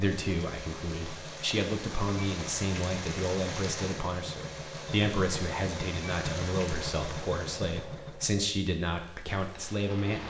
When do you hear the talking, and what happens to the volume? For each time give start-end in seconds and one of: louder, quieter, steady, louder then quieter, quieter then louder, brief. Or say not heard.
0.0-10.2 steady.